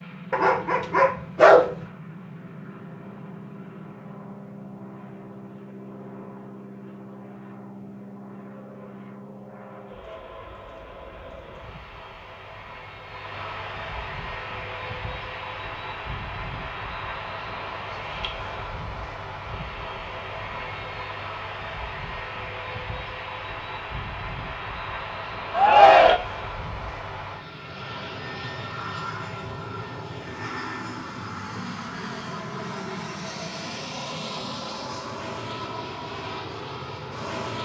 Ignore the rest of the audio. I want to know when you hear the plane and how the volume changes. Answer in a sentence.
You can hear the plane from 0.0 to 37.5 s, getting louder.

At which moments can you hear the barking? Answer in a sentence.
The barking can be heard from 0.3 to 1.8 s.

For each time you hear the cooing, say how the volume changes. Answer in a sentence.
The cooing can't be heard in this clip.